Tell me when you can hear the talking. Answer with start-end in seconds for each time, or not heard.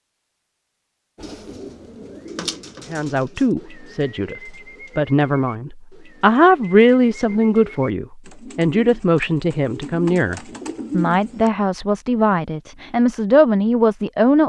2.9-14.4.